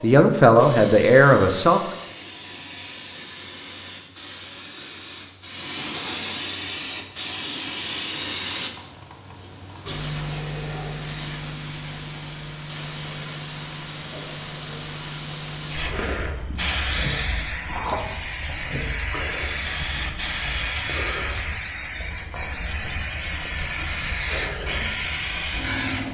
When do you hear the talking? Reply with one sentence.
You can hear the talking from 0.0 to 1.8 s.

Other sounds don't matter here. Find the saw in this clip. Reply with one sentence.
The saw can't be heard in this clip.